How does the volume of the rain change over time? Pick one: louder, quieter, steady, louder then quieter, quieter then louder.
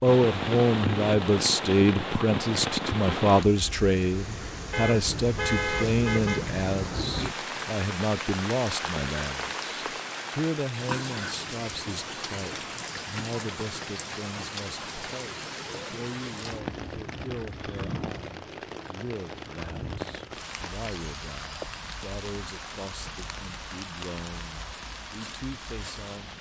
quieter.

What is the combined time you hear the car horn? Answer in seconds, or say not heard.
2 s.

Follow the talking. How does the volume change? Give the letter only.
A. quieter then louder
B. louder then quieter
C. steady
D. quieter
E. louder
D.